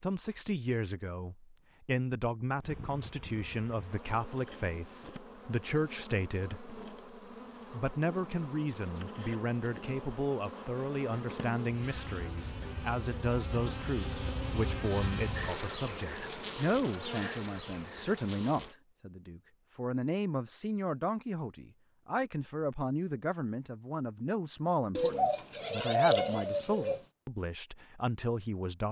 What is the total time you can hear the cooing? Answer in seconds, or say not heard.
2 s.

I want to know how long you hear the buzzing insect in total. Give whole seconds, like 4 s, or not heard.
16 s.